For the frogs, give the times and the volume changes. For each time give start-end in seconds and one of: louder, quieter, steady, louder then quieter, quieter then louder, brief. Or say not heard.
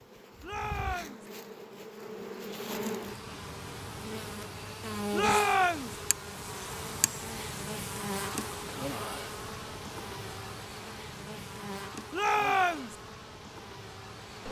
not heard.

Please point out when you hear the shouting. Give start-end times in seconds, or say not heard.
0.4-1.2, 5.1-6.0, 12.1-12.9.